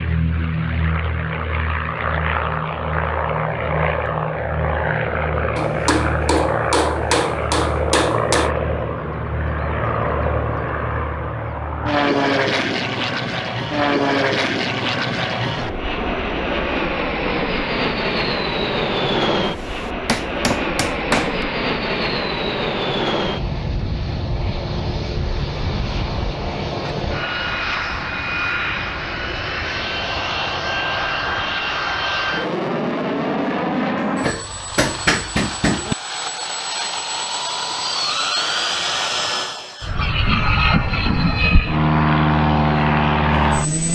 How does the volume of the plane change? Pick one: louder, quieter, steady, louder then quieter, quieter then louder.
steady.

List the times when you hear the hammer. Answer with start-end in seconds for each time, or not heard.
5.5-8.5, 19.4-21.4, 34.2-36.0.